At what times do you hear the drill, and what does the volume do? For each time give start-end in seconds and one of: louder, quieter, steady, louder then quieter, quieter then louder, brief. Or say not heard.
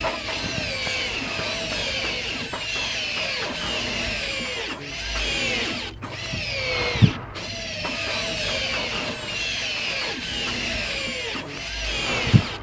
0.0-12.5 steady.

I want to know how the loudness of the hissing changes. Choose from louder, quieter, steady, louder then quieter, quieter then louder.
louder then quieter.